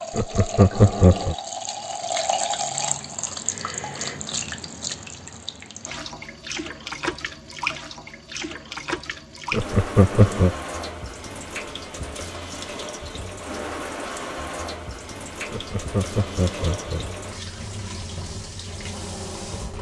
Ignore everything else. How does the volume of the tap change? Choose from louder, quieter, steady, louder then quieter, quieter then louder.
quieter.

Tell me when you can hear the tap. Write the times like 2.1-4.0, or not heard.
0.0-19.7.